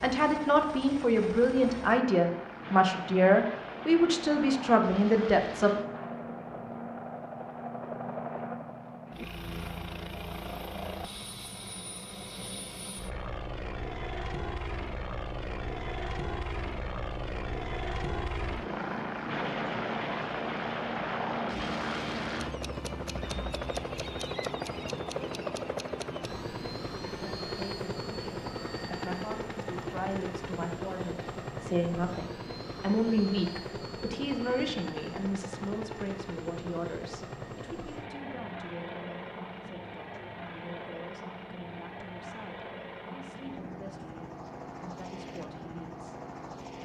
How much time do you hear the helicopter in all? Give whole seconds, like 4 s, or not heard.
47 s.